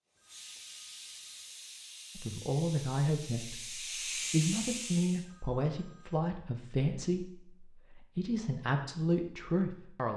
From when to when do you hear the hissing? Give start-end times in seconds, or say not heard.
0.1-5.2.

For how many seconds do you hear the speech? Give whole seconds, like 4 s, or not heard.
8 s.